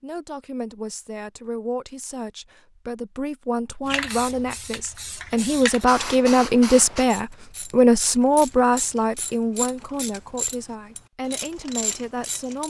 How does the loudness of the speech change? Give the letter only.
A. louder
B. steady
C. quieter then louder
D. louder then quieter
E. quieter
D.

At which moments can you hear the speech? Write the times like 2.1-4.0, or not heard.
0.0-12.6.